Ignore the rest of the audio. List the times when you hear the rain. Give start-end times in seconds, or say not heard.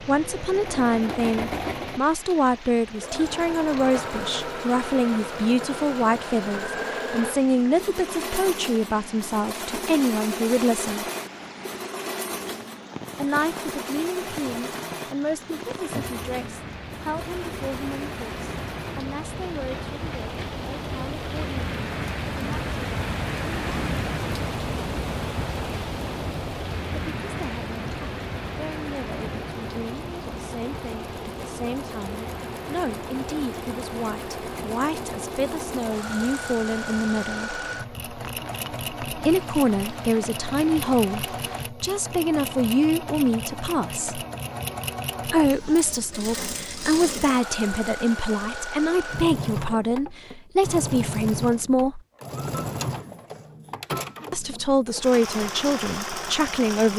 0.0-41.7.